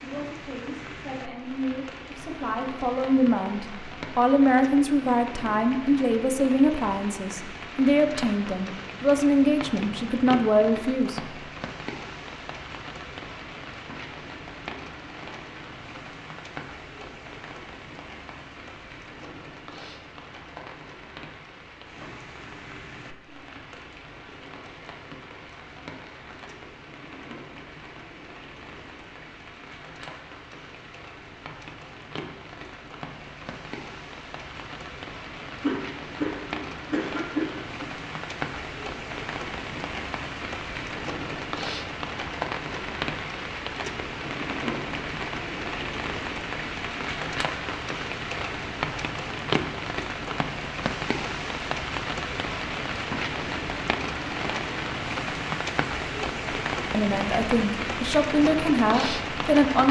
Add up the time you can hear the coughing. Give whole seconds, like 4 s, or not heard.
2 s.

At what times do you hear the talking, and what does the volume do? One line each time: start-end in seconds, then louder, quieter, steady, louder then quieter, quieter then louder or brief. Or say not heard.
0.0-11.2 louder
56.9-59.8 brief.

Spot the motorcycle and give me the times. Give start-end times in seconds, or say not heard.
not heard.